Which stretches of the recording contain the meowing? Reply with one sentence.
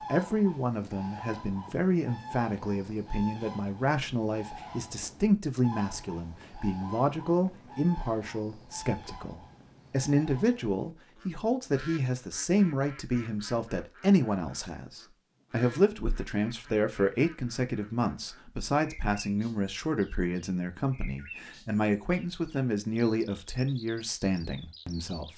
You can't hear the meowing here.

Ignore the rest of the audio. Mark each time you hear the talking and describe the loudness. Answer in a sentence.
You can hear the talking from 0.1 to 25.3 s, at a steady volume.